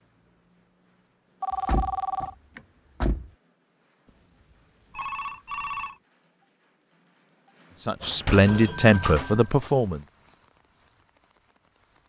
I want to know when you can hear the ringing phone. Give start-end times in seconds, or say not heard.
1.4-2.4, 4.0-6.0, 8.4-9.5.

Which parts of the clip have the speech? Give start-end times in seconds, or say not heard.
7.8-10.0.